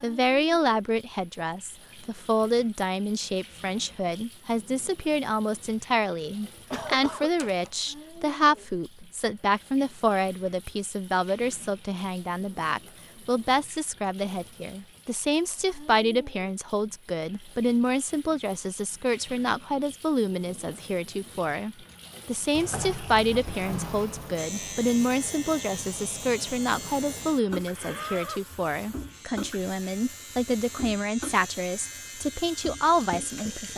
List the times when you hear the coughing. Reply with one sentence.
The coughing can be heard from 6.7 to 7.3 s.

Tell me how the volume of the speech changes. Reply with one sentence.
The volume of the speech stays about the same.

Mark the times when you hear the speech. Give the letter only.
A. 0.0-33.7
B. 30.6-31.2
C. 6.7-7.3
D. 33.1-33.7
A.